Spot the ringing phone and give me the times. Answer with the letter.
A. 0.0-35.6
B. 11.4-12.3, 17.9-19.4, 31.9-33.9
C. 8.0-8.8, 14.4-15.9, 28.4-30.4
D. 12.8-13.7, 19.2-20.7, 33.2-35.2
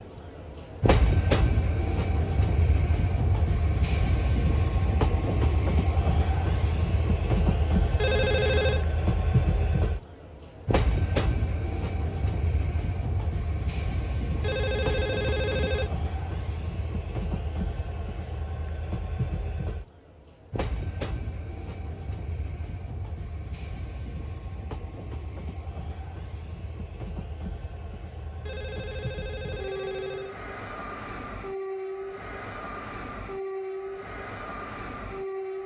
C.